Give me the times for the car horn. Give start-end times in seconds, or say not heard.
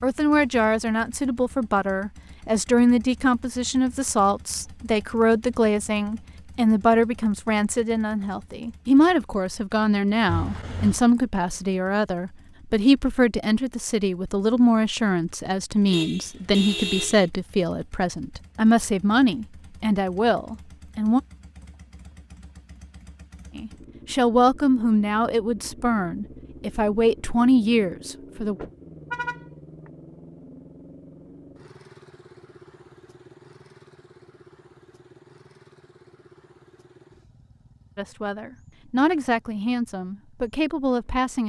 10.2-11.0, 15.8-17.2, 28.6-29.9.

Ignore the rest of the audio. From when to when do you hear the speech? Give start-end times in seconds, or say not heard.
0.0-21.2, 23.6-28.6, 38.0-41.4.